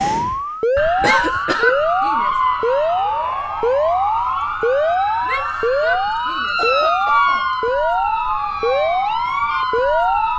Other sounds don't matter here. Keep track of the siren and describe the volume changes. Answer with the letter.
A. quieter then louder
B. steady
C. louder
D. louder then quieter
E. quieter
B.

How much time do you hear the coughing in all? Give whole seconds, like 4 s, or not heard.
2 s.